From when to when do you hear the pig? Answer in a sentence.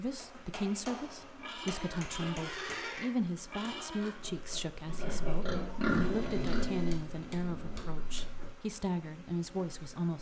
You can hear the pig from 1.4 to 8.2 s.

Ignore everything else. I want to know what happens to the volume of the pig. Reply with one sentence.
The volume of the pig goes up, then down.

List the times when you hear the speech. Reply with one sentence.
The speech can be heard from 0.0 to 10.1 s.